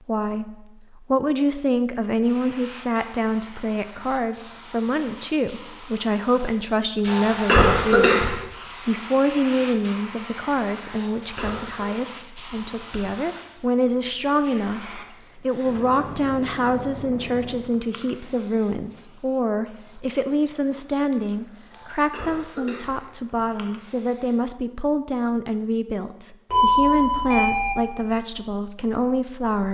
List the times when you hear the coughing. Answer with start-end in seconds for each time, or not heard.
7.0-8.3, 10.9-11.9, 21.7-23.0.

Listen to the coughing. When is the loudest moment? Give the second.
8 s.